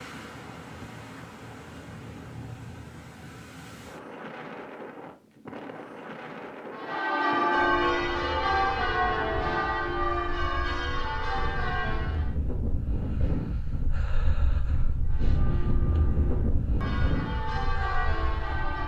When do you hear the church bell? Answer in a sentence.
You can hear the church bell from 6.8 to 12.3 s and from 15.0 to 18.8 s.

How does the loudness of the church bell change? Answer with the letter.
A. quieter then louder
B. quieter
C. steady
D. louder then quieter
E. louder
A.